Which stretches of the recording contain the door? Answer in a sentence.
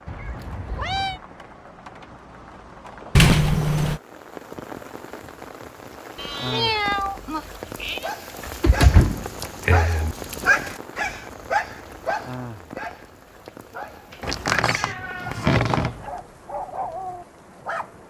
You can hear the door from 3.1 to 4.0 s, from 8.4 to 10.2 s and from 14.2 to 15.9 s.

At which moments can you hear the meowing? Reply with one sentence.
You can hear the meowing from 0.1 to 1.2 s, from 6.2 to 8.1 s and from 14.1 to 16.1 s.